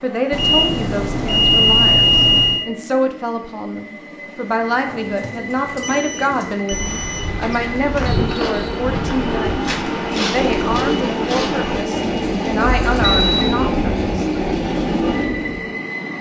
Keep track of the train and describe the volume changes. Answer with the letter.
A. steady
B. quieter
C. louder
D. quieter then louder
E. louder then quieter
C.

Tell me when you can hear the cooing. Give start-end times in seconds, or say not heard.
4.8-15.7.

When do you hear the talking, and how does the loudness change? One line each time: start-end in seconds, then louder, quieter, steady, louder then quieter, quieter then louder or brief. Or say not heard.
0.0-14.3 steady.